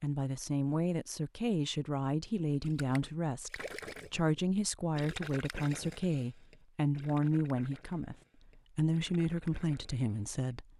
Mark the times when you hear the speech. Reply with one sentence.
The speech can be heard from 0.0 to 10.7 s.